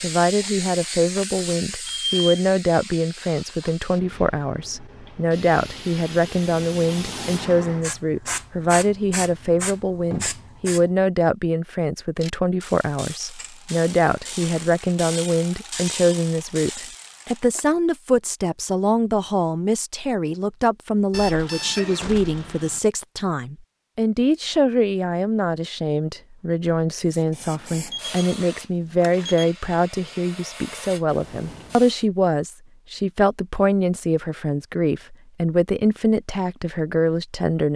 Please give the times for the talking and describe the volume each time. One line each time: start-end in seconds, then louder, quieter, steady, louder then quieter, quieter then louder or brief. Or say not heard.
0.0-37.7 steady.